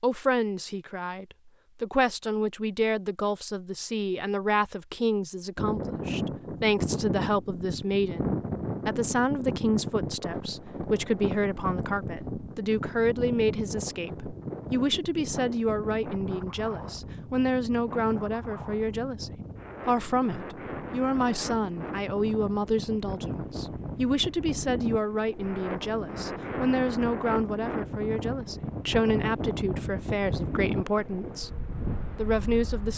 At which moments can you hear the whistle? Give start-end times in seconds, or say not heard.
not heard.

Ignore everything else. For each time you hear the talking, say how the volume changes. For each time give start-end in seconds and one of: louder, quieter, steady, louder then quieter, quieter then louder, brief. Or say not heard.
0.0-31.5 steady
32.1-32.9 brief.